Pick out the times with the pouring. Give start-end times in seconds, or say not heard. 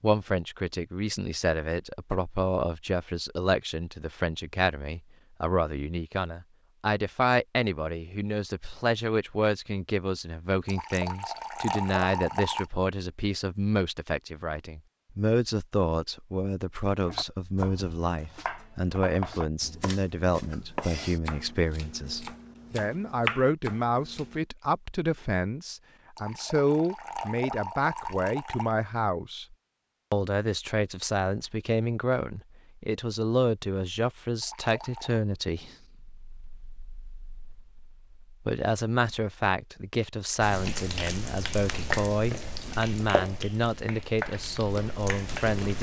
10.7-12.7, 26.1-28.8, 34.4-35.2.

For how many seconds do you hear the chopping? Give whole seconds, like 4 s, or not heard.
7 s.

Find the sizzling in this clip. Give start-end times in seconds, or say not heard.
40.4-45.7.